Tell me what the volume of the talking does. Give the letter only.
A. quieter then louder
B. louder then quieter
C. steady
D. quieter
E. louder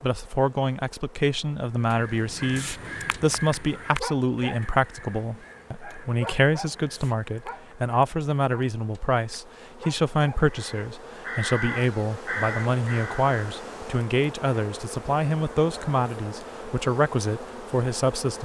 C.